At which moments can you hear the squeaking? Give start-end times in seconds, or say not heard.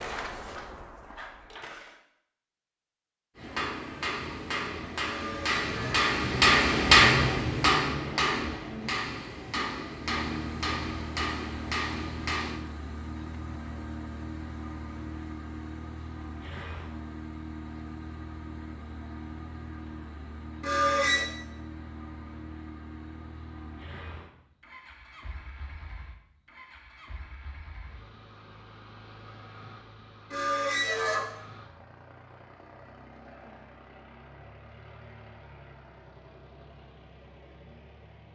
5.0-6.0, 20.6-21.2, 30.3-31.2.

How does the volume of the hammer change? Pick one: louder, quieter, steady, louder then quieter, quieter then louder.
louder then quieter.